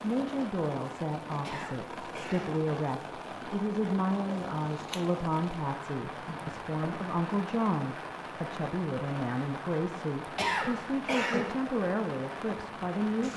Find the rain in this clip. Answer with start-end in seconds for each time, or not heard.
0.0-13.3.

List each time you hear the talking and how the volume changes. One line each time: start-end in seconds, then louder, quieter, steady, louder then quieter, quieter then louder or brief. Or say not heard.
0.0-13.3 steady.